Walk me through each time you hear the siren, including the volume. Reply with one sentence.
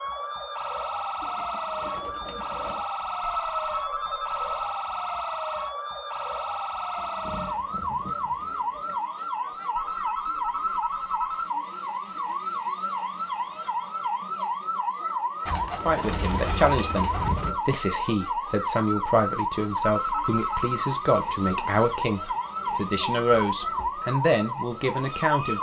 The siren can be heard from 0.0 to 25.5 s, at a steady volume.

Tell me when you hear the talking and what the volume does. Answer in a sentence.
The talking can be heard from 15.6 to 25.5 s, at a steady volume.